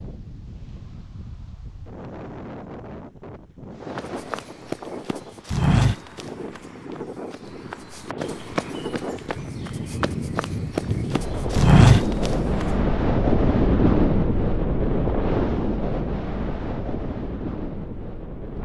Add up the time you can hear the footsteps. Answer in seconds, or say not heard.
9 s.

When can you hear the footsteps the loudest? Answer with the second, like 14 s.
12 s.